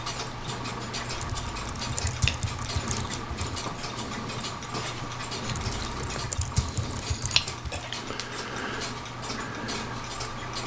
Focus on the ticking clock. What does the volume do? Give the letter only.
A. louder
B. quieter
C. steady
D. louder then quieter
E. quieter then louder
C.